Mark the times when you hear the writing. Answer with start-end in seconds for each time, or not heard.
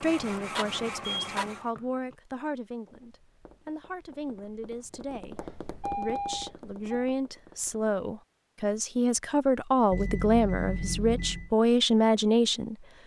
not heard.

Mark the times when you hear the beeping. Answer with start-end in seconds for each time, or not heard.
1.1-2.1, 5.3-7.0, 9.9-11.5.